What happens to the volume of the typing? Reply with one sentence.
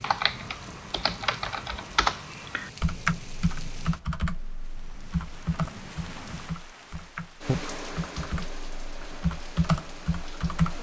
The volume of the typing goes down, then up.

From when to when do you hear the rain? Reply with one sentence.
The rain can be heard from 0.0 to 10.7 s.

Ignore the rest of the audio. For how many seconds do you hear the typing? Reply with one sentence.
You can hear the typing for 11 seconds altogether.